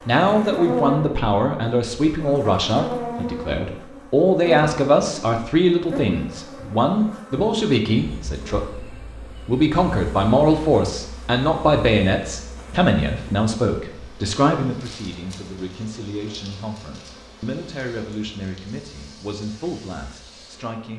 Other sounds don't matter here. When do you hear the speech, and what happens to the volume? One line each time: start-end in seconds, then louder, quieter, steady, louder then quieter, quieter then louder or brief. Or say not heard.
0.1-20.9 quieter.